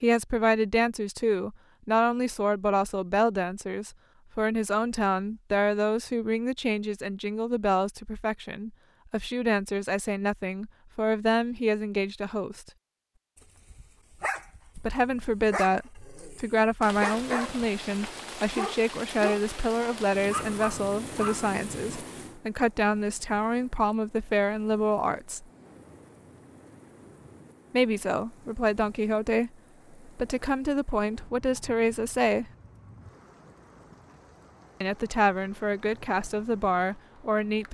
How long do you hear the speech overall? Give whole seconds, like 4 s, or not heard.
31 s.